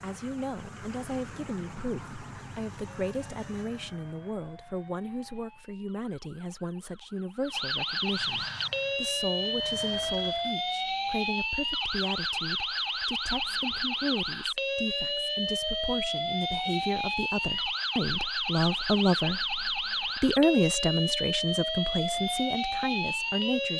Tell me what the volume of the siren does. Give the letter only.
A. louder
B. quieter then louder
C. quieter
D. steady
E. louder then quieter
A.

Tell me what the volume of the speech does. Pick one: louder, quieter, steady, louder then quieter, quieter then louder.
louder.